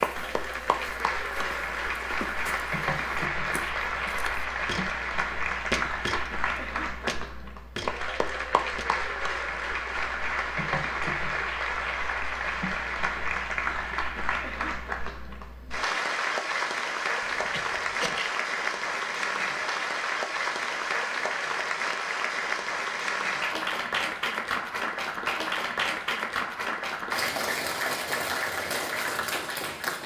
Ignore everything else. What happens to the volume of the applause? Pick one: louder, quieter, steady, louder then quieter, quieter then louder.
steady.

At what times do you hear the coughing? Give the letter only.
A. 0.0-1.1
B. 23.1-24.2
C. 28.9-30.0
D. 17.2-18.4
D.